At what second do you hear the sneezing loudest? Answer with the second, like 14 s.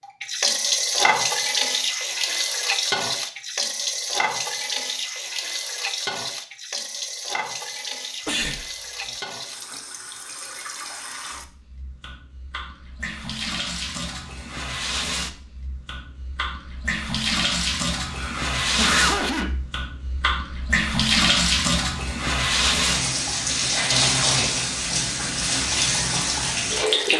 19 s.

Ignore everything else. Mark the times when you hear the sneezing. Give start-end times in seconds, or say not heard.
8.2-9.2, 18.1-19.6.